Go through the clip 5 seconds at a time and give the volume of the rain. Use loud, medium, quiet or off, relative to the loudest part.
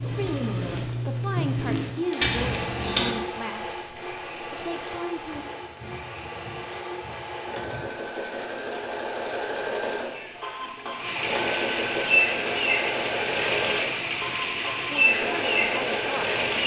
quiet, quiet, loud, loud.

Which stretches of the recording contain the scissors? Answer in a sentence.
The scissors can be heard from 2.2 to 3.1 s.